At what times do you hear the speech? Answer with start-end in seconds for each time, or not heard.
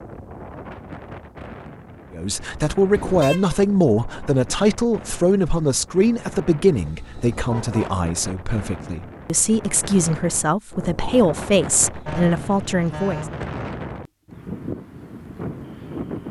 2.1-13.2.